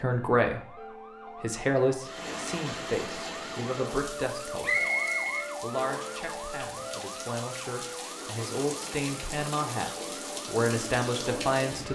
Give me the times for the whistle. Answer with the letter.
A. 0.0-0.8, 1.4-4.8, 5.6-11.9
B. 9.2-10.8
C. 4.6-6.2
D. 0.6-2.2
C.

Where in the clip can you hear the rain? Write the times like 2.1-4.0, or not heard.
2.0-11.9.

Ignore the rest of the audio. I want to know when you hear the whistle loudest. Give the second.
5 s.